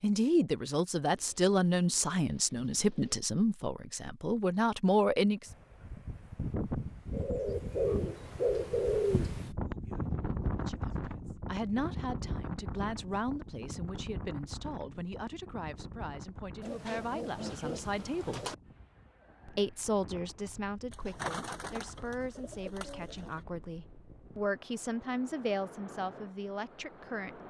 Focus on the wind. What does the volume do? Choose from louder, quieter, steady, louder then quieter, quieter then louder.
quieter.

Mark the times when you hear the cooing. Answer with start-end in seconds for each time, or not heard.
1.1-3.2, 7.1-9.5, 16.6-18.6, 20.9-23.4.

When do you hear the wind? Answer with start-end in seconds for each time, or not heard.
5.5-27.4.